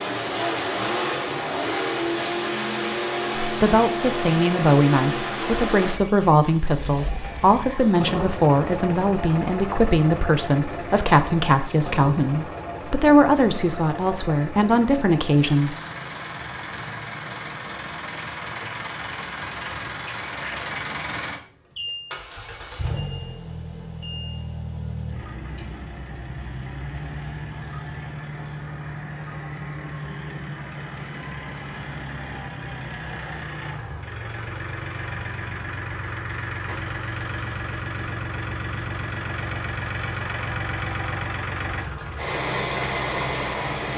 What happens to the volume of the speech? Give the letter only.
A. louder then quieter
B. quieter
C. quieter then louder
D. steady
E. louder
D.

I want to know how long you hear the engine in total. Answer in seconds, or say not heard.
44 s.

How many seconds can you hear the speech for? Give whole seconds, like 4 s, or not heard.
12 s.